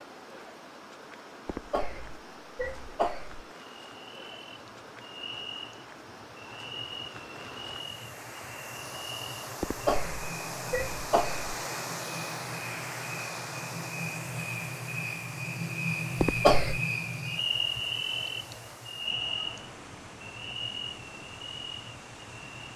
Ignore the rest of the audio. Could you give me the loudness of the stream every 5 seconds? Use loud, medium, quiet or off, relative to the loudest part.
medium, medium, loud, medium, medium.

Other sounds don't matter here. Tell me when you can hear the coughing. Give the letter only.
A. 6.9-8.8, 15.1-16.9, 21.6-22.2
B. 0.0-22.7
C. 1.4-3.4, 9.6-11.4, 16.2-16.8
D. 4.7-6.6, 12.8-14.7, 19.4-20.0
C.